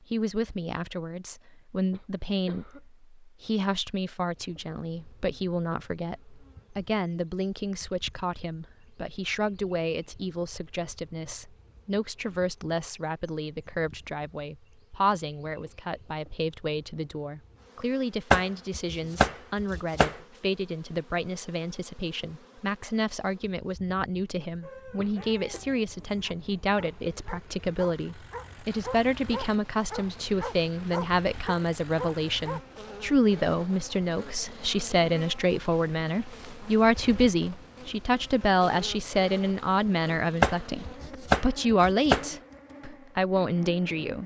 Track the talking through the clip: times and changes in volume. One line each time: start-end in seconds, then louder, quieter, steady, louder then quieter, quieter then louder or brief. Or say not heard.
0.0-44.2 louder.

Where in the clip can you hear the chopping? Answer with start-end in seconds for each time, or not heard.
18.3-20.1, 40.4-42.3.